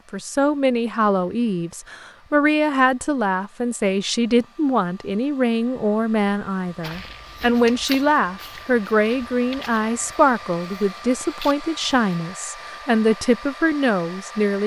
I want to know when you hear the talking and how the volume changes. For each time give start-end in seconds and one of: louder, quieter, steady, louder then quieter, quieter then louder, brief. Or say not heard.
0.1-14.6 steady.